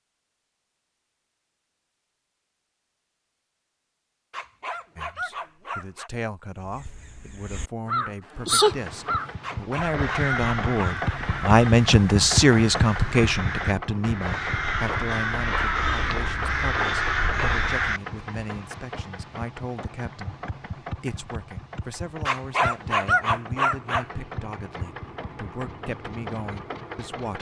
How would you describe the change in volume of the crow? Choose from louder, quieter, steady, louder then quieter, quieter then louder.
quieter then louder.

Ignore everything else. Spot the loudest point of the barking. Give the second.
23 s.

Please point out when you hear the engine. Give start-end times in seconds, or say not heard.
8.4-27.3.